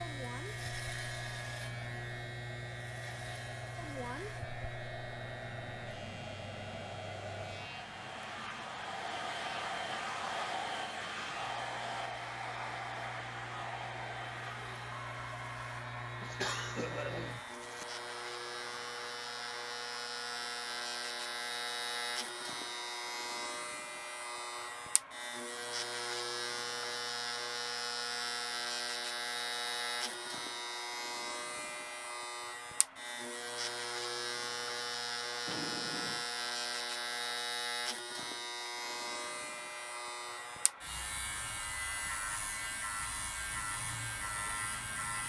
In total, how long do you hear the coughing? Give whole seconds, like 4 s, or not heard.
2 s.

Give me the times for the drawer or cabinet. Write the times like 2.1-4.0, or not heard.
35.5-36.2.